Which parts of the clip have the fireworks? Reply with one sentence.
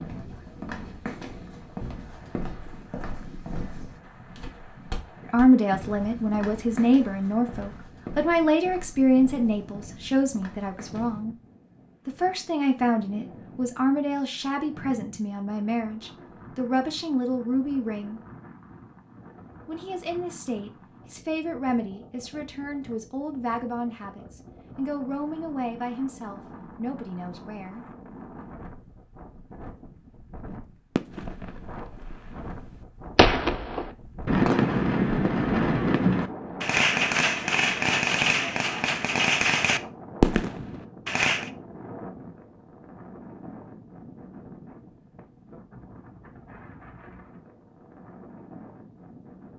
You can hear the fireworks from 30.9 to 41.5 s.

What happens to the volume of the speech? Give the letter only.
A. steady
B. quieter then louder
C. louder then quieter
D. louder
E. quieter
E.